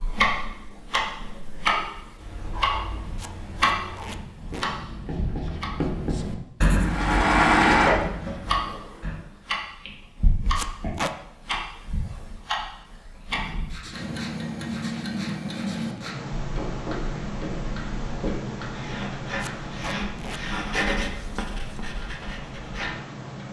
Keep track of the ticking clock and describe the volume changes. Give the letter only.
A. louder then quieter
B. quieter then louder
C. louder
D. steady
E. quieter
E.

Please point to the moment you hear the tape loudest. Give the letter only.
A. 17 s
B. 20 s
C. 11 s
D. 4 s
C.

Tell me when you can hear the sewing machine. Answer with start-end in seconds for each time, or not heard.
6.8-9.1.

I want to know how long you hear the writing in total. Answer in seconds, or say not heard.
19 s.